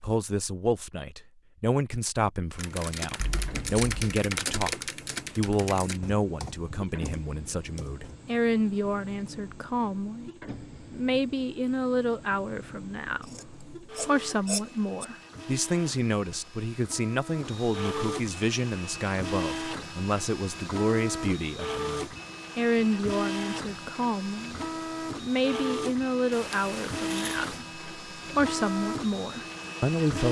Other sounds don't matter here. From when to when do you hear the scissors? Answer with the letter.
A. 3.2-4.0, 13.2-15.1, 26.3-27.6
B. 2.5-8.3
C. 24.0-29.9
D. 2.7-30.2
A.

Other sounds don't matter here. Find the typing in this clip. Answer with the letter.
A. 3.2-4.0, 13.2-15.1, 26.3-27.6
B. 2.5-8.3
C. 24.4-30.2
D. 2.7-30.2
B.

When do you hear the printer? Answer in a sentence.
You can hear the printer from 2.7 to 30.2 s.